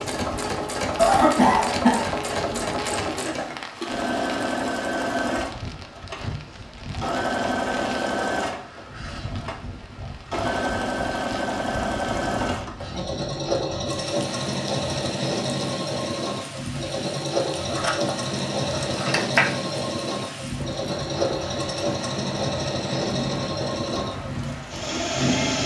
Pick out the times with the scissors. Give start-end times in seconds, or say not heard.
17.7-19.6.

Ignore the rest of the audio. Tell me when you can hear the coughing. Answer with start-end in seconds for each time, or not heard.
0.9-2.6.